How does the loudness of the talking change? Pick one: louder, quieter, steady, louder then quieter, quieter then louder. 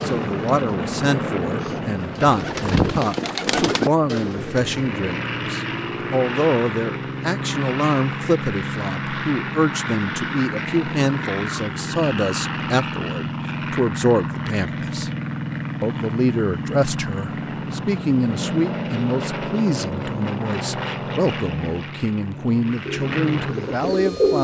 steady.